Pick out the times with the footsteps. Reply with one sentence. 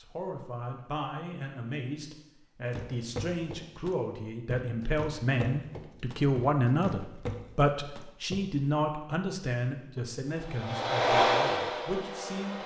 You can hear the footsteps from 2.7 to 8.4 s.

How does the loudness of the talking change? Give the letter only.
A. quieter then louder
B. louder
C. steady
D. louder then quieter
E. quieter
D.